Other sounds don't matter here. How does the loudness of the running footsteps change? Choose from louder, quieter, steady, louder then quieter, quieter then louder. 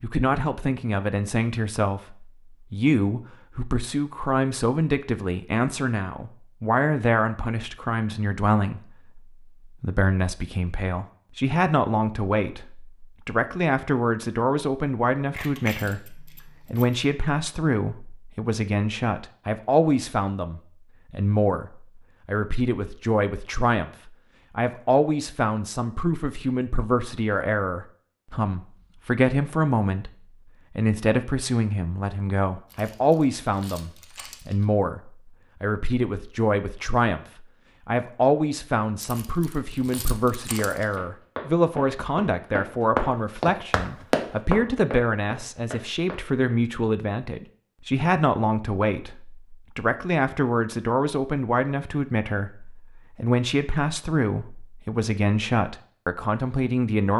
louder then quieter.